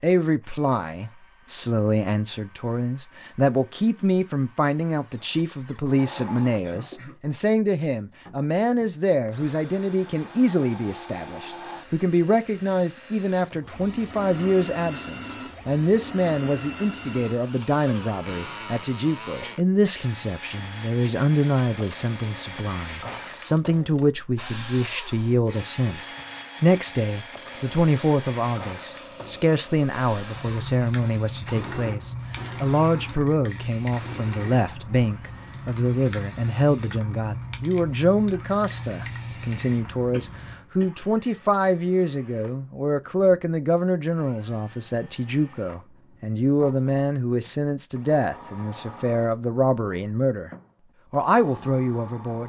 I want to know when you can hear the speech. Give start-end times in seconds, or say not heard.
0.0-50.5, 51.1-52.4.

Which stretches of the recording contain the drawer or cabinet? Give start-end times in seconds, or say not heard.
not heard.